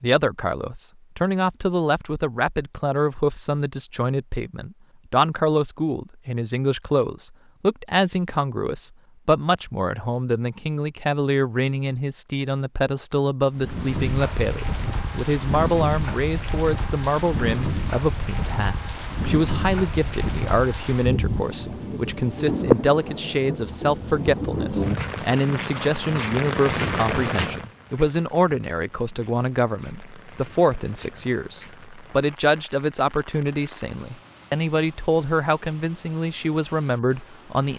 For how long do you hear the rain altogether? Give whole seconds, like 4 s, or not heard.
24 s.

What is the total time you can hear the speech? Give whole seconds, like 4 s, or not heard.
38 s.